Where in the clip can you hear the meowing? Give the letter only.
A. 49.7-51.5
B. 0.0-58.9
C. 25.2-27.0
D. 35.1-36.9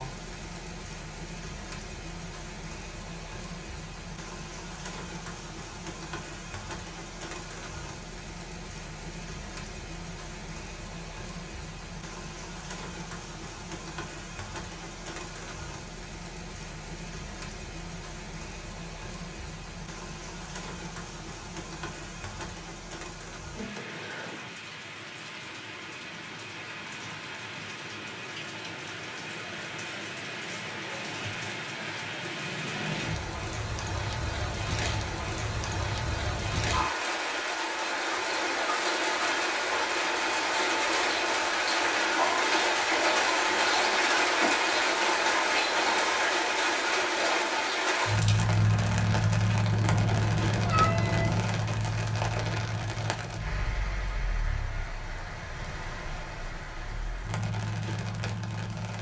A.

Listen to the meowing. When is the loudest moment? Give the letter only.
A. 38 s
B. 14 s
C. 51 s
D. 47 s
C.